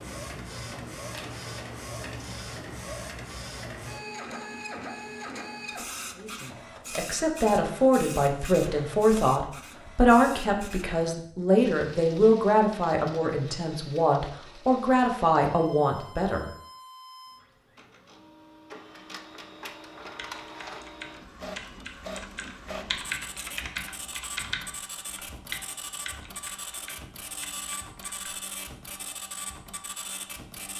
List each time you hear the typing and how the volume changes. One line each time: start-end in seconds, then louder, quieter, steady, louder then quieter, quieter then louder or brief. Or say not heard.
20.0-28.6 louder then quieter.